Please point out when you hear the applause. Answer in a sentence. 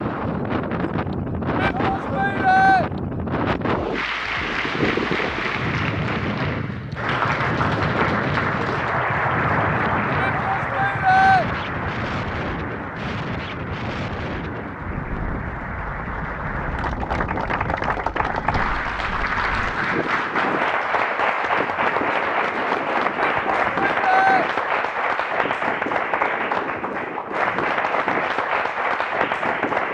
You can hear the applause from 3.9 to 29.8 s.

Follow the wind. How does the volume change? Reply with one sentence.
The volume of the wind goes down.